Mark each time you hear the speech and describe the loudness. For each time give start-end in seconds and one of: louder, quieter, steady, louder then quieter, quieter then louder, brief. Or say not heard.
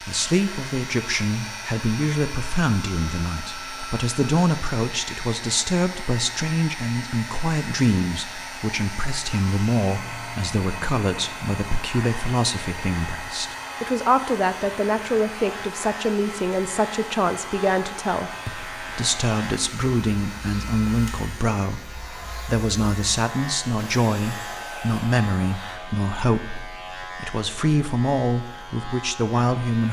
0.0-29.8 steady.